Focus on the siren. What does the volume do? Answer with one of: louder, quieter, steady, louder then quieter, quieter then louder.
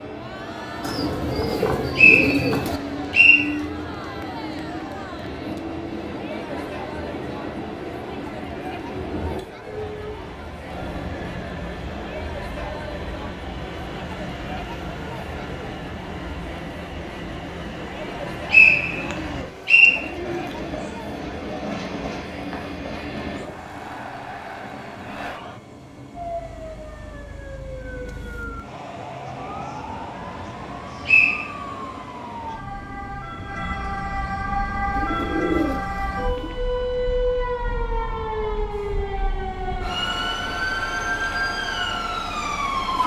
louder.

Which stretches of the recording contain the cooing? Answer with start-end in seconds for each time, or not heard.
0.8-2.8, 18.9-20.4, 34.9-36.5.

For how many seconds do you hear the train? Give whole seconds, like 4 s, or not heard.
43 s.